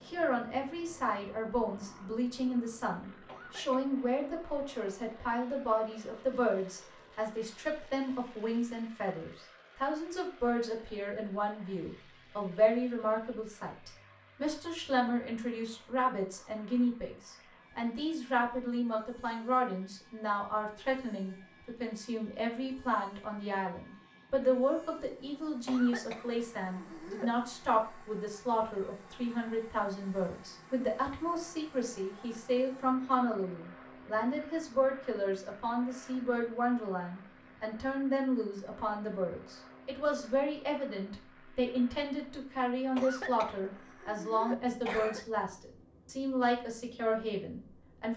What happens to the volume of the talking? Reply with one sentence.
The loudness of the talking stays about the same.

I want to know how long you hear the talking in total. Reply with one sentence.
The talking can be heard for 48 seconds in total.